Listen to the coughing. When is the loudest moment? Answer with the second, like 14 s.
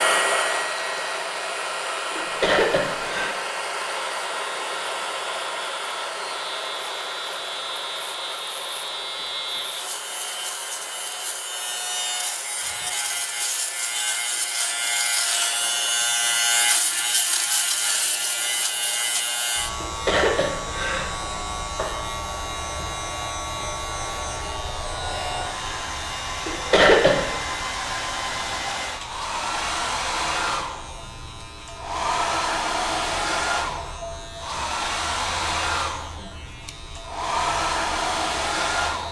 27 s.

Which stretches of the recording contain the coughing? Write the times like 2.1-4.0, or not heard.
2.1-3.4, 19.8-21.2, 26.4-27.4.